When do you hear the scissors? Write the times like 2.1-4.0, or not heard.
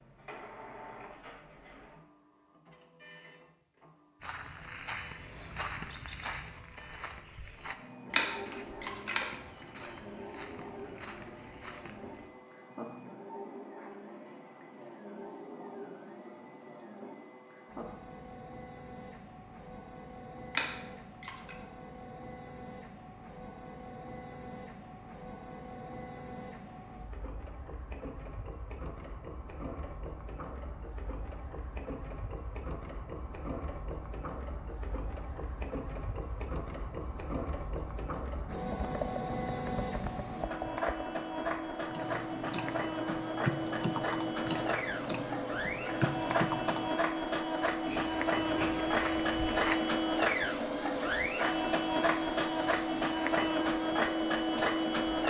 8.1-9.2, 20.5-21.6, 47.9-48.8.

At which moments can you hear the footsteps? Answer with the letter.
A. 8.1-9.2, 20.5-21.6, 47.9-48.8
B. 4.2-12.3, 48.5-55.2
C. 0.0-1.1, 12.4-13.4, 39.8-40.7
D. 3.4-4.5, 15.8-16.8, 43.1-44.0
B.